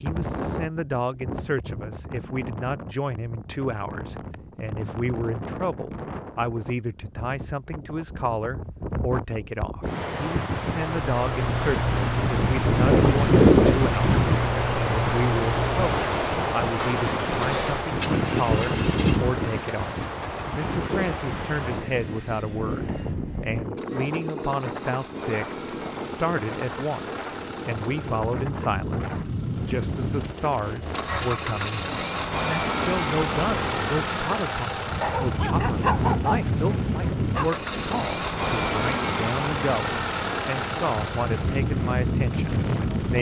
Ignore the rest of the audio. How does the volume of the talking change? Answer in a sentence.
The volume of the talking stays about the same.